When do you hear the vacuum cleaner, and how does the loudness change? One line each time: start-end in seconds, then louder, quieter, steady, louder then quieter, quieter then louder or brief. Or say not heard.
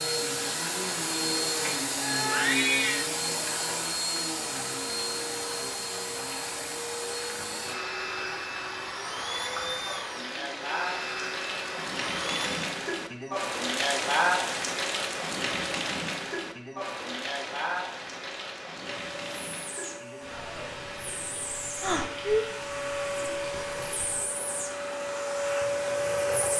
0.0-12.7 quieter
18.8-26.5 louder.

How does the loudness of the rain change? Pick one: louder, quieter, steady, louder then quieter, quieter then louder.
louder then quieter.